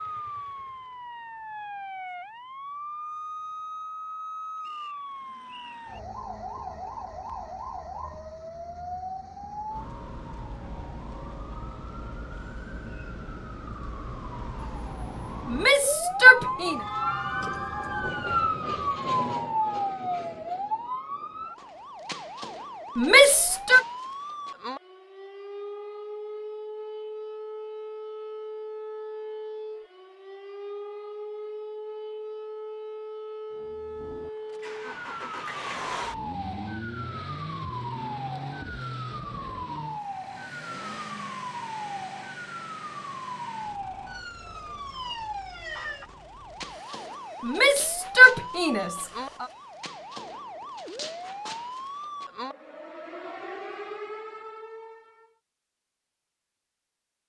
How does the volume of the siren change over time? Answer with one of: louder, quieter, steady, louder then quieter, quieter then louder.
louder then quieter.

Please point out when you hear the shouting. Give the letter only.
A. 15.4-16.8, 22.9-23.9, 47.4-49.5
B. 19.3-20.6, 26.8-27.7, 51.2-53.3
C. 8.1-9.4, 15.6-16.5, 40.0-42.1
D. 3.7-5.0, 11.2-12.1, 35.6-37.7
A.